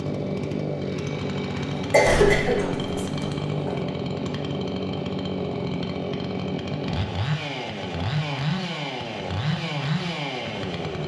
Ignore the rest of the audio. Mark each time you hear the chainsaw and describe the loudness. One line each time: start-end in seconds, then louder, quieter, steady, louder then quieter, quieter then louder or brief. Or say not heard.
0.0-11.0 steady.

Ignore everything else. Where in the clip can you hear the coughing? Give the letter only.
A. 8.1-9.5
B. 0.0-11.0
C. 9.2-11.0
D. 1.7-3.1
D.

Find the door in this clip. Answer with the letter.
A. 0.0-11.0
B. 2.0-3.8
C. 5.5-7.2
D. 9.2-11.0
B.